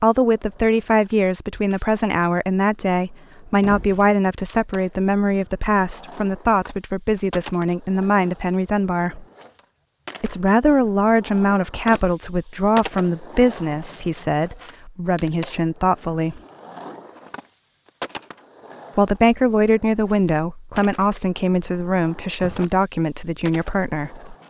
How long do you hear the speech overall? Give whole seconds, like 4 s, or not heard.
21 s.